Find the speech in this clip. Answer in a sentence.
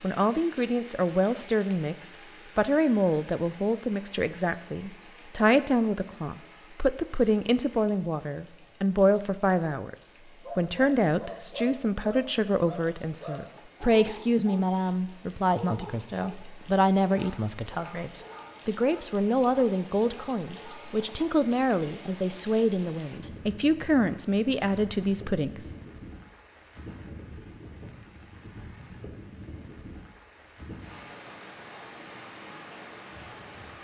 You can hear the speech from 0.0 to 25.7 s.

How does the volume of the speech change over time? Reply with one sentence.
The volume of the speech stays about the same.